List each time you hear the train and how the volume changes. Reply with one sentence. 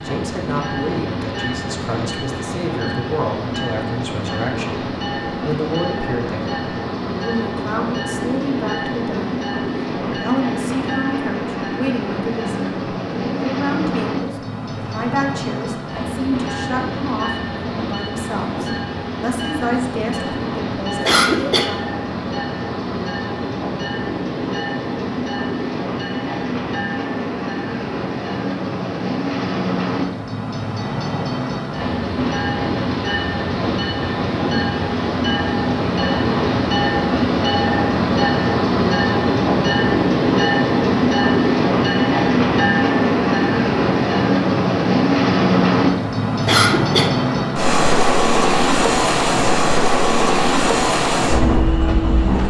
You can hear the train from 0.0 to 52.4 s, getting louder.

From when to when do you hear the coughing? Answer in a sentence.
The coughing can be heard from 21.1 to 21.7 s and from 46.2 to 47.1 s.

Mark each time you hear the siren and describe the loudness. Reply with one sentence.
You can't hear the siren here.